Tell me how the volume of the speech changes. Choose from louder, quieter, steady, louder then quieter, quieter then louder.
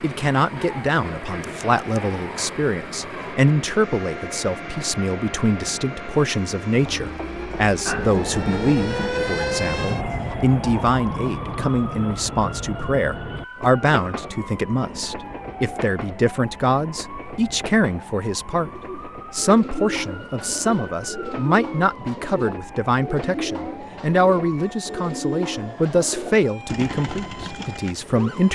steady.